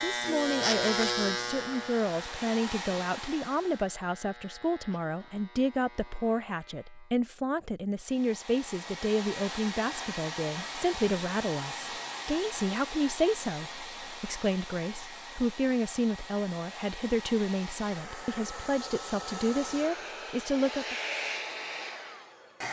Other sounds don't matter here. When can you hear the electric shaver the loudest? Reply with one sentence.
The volume of the electric shaver peaks at 1 second.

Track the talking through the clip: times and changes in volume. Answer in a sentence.
The talking can be heard from 0.0 to 20.9 s, at a steady volume.